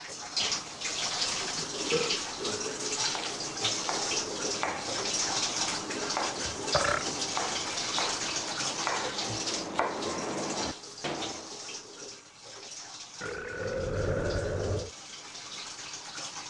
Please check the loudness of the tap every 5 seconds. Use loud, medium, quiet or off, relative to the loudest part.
loud, loud, medium, medium.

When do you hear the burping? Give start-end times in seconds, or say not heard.
1.7-2.7, 6.4-7.1, 13.2-14.9.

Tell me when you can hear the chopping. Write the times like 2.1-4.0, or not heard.
3.0-11.5.